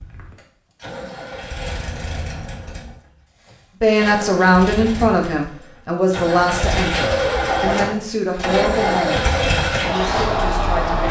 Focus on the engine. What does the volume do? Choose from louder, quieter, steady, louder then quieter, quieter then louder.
louder.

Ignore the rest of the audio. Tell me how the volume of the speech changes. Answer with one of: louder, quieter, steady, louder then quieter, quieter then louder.
quieter.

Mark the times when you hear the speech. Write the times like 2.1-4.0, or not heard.
3.8-11.0.